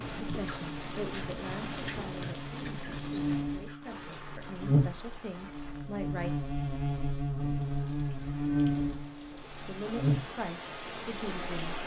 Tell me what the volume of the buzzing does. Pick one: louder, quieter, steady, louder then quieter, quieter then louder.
louder.